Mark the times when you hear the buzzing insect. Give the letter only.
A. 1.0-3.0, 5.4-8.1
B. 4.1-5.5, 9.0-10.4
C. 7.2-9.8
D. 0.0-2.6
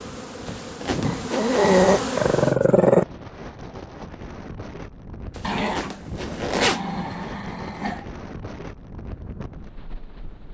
D.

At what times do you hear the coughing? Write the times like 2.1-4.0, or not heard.
not heard.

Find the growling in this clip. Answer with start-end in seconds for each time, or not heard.
1.0-3.0, 5.4-8.1.